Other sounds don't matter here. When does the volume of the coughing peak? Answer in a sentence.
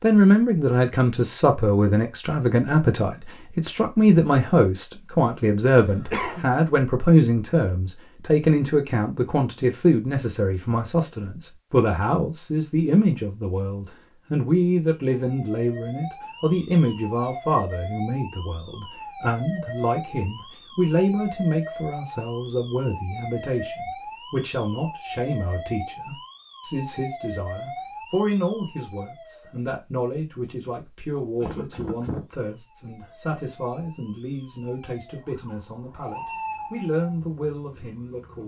The loudest moment of the coughing is at 6 seconds.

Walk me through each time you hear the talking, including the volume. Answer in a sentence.
The talking can be heard from 0.0 to 38.4 s, getting quieter.